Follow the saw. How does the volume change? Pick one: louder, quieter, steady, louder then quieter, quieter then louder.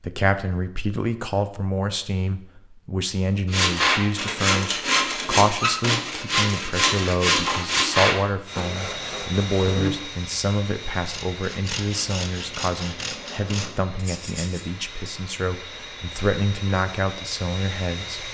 quieter.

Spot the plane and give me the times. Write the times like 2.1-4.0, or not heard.
8.4-18.2.